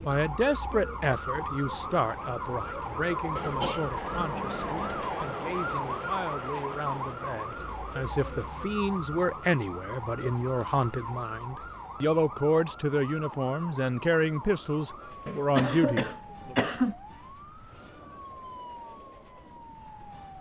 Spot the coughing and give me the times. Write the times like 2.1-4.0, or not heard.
3.4-4.8, 15.2-16.9.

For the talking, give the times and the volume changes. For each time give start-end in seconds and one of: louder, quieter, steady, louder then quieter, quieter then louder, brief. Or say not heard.
0.1-16.6 quieter then louder.